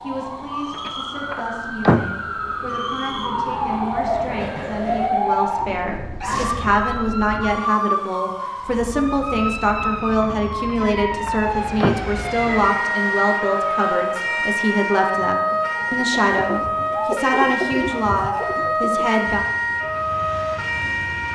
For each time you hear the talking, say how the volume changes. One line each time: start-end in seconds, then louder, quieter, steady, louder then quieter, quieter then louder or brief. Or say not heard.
0.0-19.4 louder.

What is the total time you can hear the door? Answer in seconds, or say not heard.
3 s.